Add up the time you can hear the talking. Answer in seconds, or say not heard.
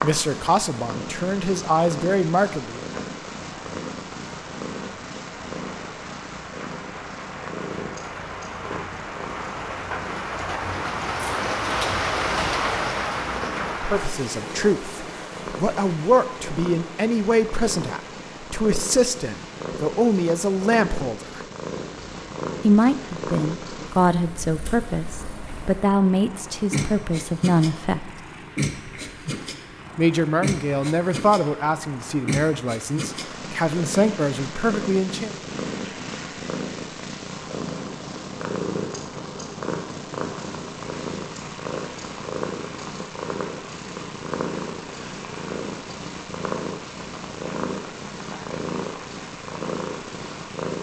21 s.